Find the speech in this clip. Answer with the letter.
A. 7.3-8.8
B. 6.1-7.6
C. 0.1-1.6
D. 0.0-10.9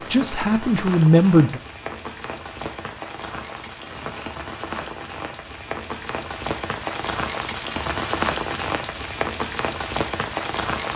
C.